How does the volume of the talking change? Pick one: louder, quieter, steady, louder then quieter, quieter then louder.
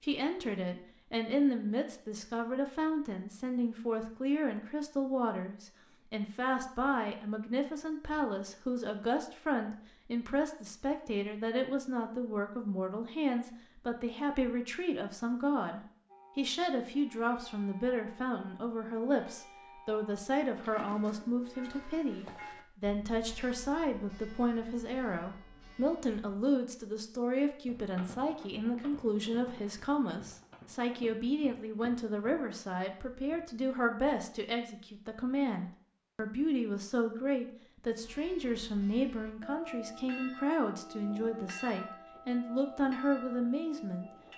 steady.